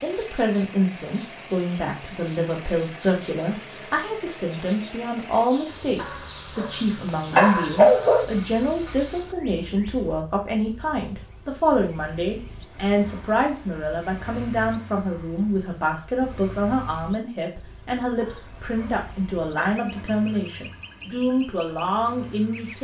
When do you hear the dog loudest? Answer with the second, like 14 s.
8 s.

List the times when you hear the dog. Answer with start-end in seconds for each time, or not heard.
6.0-8.2, 18.2-19.7.